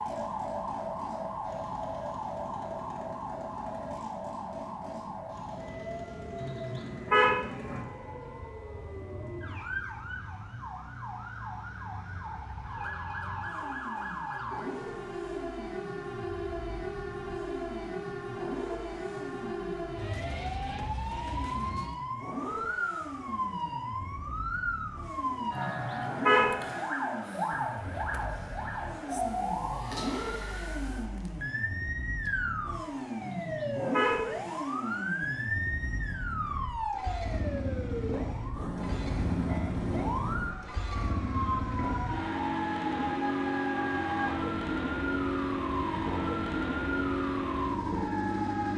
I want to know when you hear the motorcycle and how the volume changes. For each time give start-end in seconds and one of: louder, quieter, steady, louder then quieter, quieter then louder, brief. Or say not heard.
0.0-48.7 louder.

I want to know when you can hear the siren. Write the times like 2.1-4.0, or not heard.
0.0-48.7.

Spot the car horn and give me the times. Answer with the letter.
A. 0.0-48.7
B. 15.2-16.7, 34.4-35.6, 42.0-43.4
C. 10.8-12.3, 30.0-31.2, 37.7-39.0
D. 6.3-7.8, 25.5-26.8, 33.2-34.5
D.